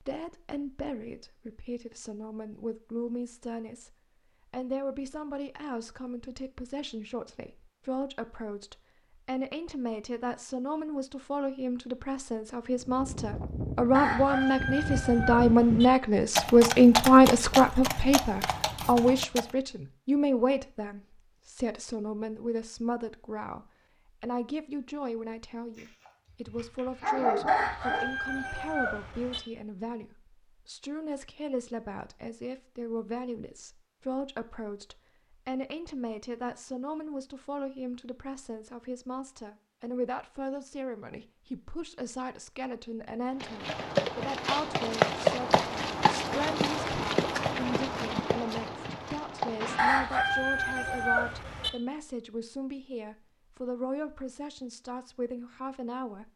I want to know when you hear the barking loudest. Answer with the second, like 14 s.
27 s.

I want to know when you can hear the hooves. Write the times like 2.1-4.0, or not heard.
12.8-19.5, 43.4-50.1.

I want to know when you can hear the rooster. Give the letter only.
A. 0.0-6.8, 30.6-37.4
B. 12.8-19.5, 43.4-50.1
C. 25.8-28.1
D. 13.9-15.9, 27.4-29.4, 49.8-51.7
D.